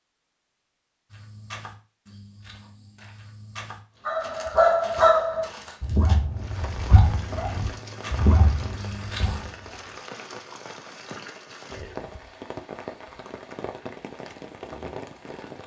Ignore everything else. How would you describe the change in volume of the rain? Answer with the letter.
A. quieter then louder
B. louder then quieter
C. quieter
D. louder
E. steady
E.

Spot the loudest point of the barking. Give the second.
5 s.